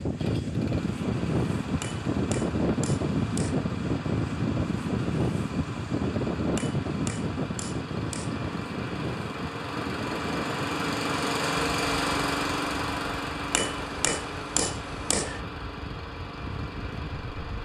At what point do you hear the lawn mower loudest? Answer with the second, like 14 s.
12 s.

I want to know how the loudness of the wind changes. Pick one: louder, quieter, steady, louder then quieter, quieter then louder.
quieter.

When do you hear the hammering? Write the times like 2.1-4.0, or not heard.
1.8-3.6, 6.5-8.4, 13.5-15.4.